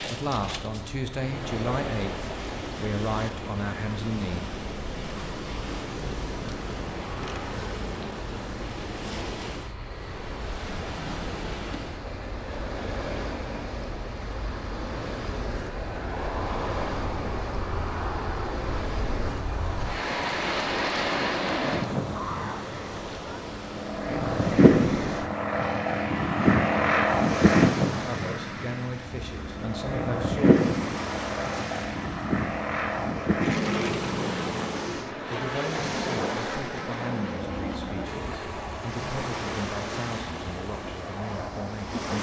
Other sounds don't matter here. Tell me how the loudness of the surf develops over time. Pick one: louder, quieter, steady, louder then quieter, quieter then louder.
steady.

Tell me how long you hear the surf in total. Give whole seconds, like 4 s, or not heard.
42 s.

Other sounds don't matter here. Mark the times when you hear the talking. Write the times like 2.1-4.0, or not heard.
0.0-4.5, 28.0-30.6, 35.2-42.0.